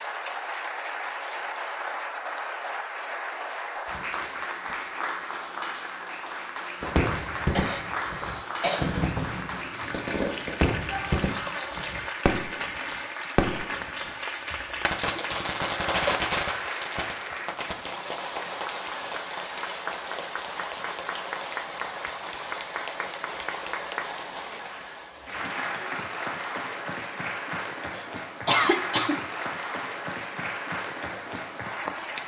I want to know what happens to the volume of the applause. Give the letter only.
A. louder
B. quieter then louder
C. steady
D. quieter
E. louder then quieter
C.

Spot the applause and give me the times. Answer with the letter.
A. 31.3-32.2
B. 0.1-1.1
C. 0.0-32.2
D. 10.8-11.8
C.